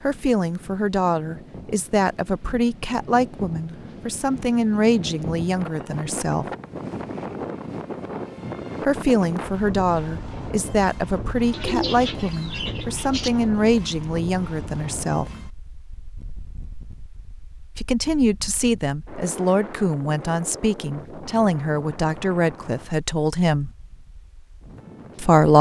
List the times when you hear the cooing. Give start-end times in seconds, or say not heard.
11.5-13.3.